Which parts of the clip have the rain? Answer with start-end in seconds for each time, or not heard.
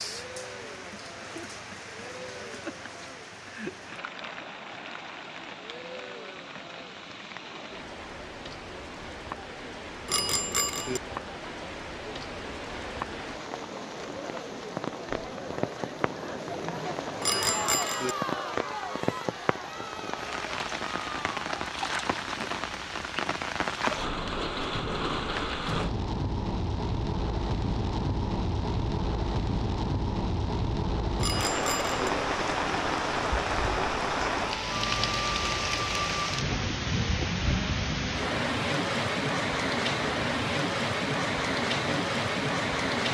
0.0-43.0.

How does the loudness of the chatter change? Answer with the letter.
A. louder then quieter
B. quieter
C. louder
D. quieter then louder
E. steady
C.